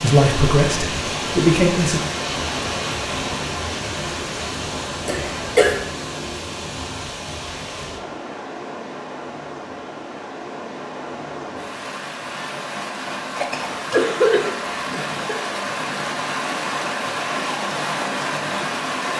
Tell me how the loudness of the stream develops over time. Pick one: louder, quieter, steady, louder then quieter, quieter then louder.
quieter then louder.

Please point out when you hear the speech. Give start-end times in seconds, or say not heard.
0.0-2.0.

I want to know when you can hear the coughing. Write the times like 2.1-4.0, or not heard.
5.0-5.8, 13.3-15.3.